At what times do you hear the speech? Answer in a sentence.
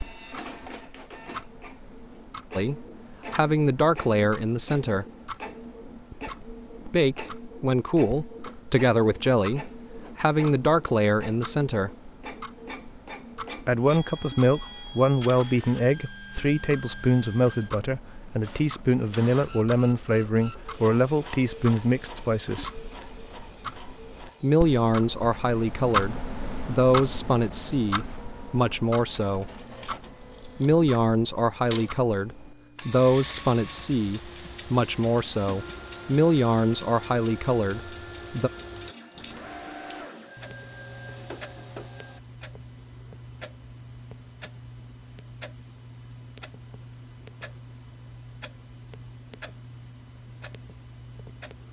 The speech can be heard from 2.5 to 5.0 s, from 6.8 to 11.9 s, from 13.6 to 22.8 s, from 24.4 to 29.4 s and from 30.6 to 38.5 s.